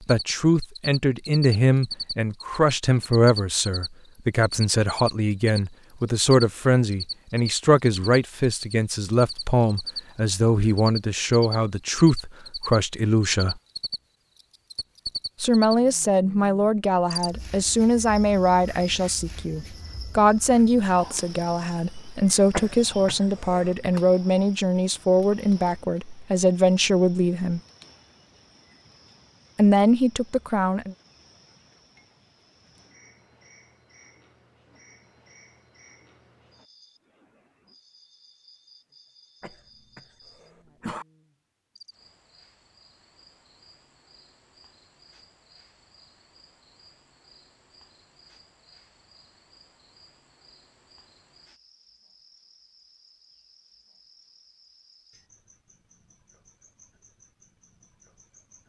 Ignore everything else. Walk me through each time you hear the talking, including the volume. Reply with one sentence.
You can hear the talking from 0.1 to 13.6 s, at a steady volume; from 15.4 to 27.6 s, at a steady volume; and briefly from 29.6 to 30.9 s.